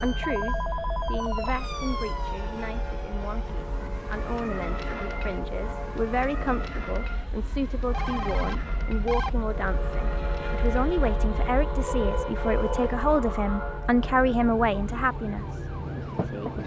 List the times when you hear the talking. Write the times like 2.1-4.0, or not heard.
0.0-16.5.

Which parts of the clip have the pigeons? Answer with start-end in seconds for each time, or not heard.
not heard.